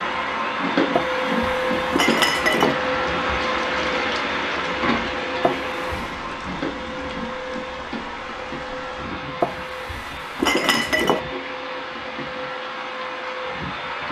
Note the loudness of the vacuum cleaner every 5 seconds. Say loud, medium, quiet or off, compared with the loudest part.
loud, medium, medium.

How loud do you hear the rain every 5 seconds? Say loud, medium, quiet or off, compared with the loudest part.
loud, medium, medium.